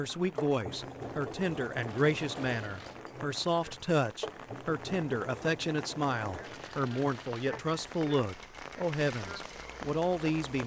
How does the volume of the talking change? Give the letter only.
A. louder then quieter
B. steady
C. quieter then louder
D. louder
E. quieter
B.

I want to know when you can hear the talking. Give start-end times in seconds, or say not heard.
0.0-10.6.